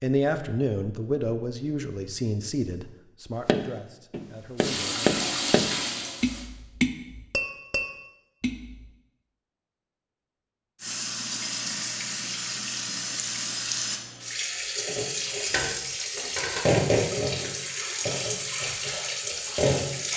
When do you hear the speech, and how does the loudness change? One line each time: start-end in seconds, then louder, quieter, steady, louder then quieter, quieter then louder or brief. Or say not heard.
0.0-5.2 quieter.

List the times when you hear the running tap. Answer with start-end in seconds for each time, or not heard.
4.5-6.5, 10.8-20.1.